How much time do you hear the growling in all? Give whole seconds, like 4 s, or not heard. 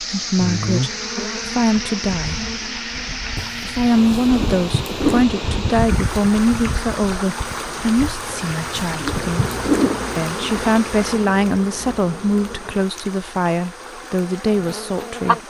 4 s.